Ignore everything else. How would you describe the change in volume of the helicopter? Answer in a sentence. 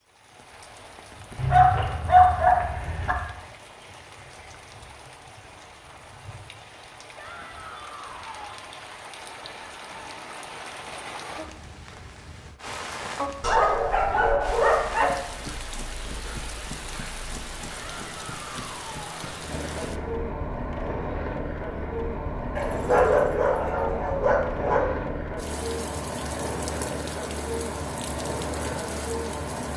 The volume of the helicopter goes up.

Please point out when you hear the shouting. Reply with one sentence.
You can hear the shouting from 7.2 to 8.6 s and from 17.9 to 19.4 s.